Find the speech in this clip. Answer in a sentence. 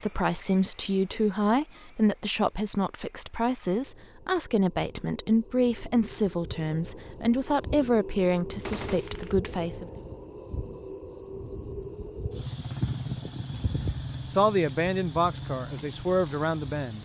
You can hear the speech from 0.0 to 9.8 s and from 14.3 to 17.0 s.